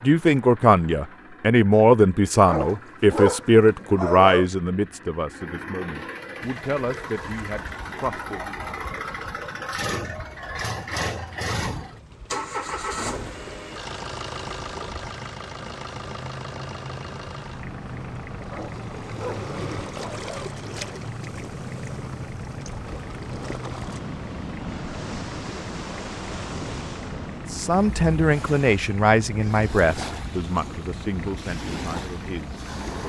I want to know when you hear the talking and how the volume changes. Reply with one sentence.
The talking can be heard from 0.0 to 8.6 s, getting quieter; and from 27.5 to 33.0 s, getting quieter.